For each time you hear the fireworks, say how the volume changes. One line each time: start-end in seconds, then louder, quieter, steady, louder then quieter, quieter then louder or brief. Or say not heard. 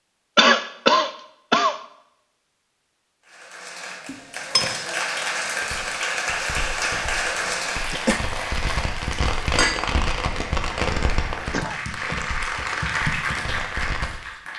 5.2-14.1 louder then quieter.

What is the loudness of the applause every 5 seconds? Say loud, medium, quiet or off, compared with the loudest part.
medium, loud, loud.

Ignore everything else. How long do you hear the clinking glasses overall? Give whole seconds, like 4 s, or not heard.
2 s.